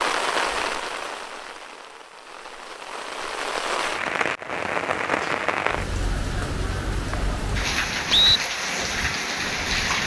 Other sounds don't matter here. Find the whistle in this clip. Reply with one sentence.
The whistle can be heard from 6.4 to 8.4 s.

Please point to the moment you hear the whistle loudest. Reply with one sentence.
The loudest moment of the whistle is at 8 seconds.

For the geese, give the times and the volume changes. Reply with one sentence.
You can't hear the geese here.